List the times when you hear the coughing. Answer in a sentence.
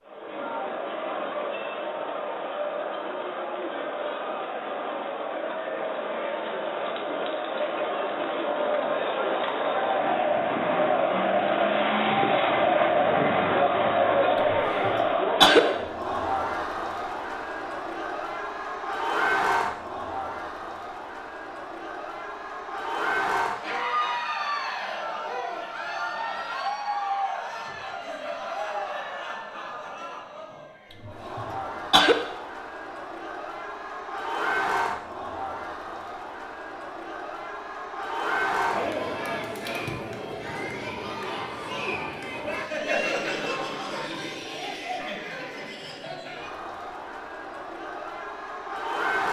You can hear the coughing from 14.5 to 15.6 s and from 31.1 to 32.1 s.